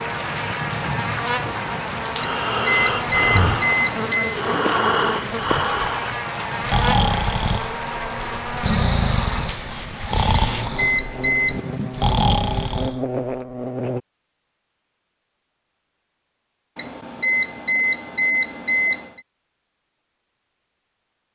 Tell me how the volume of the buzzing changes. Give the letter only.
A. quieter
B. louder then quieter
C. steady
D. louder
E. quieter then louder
C.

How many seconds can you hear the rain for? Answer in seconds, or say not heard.
13 s.